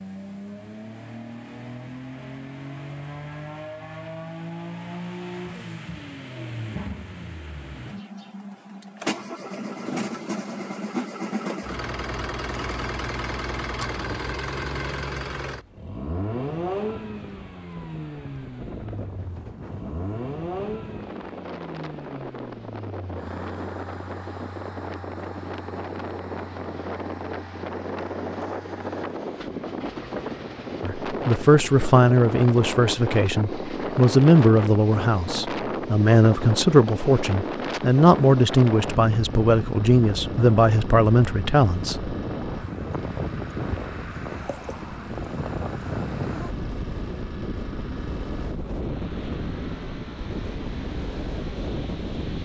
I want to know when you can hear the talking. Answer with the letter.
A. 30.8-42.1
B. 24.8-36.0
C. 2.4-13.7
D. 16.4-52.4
A.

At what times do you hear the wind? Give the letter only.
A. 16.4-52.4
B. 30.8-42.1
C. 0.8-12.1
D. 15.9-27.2
A.